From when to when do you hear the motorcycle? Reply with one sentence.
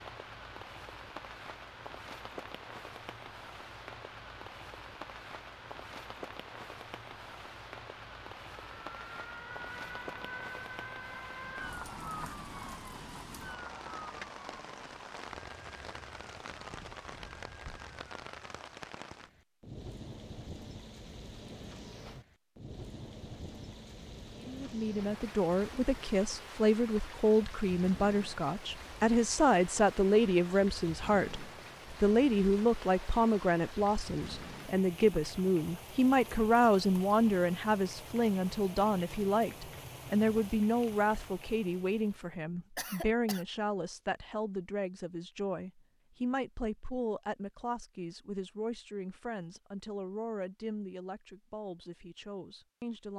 The motorcycle can't be heard in this clip.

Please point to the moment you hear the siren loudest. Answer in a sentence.
The loudest moment of the siren is at 12 seconds.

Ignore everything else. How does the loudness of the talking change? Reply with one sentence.
The loudness of the talking goes down.